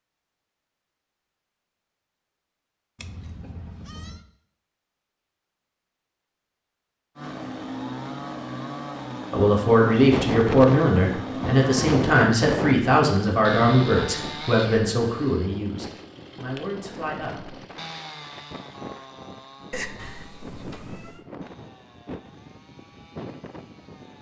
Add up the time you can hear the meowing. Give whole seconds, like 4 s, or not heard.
3 s.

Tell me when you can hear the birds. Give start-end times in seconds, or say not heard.
not heard.